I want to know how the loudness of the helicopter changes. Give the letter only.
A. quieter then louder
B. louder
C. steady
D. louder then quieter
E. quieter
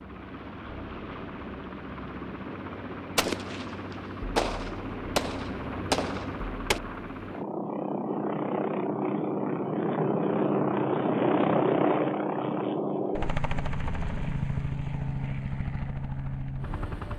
D.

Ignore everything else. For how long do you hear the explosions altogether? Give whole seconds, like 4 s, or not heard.
4 s.